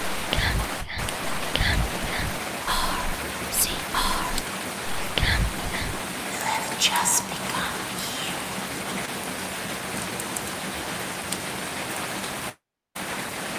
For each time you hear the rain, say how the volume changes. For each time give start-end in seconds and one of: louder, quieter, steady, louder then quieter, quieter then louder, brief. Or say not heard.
0.0-13.5 steady.